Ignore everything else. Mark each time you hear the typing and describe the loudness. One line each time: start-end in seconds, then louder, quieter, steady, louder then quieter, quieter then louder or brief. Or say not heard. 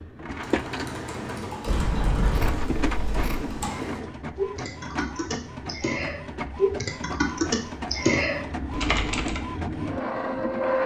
0.3-9.6 louder.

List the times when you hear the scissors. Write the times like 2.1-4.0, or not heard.
2.3-3.6.